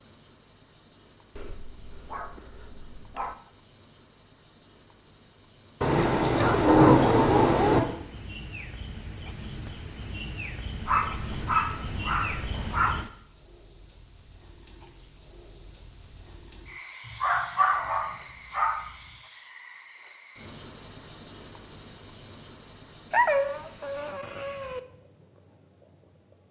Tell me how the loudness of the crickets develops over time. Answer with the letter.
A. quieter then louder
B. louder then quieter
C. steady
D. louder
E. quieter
B.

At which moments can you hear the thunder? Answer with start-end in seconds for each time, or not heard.
5.8-7.8.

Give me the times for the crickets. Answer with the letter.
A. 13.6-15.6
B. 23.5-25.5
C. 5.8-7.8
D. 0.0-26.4
D.